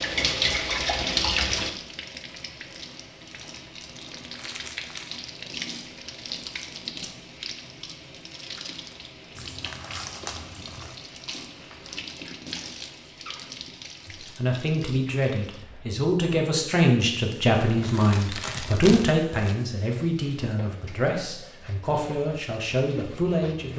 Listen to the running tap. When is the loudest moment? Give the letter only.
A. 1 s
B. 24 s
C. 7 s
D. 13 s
A.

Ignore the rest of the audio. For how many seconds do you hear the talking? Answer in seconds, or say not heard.
10 s.